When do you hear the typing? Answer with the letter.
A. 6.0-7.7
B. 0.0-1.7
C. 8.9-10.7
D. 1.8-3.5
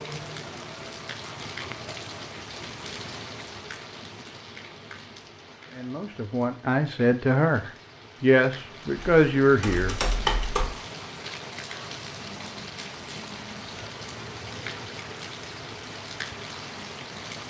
C.